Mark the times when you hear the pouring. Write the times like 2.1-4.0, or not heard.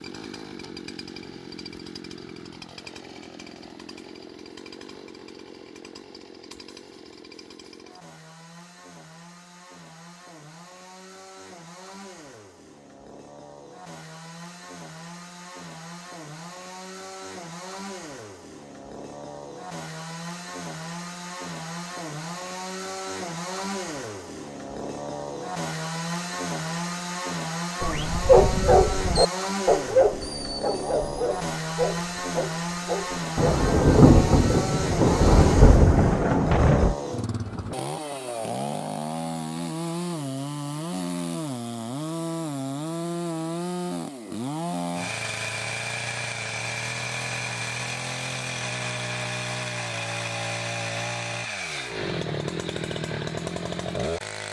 not heard.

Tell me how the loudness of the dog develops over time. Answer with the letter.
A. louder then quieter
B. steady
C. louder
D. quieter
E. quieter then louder
D.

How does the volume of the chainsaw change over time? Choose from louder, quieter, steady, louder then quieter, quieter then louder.
louder.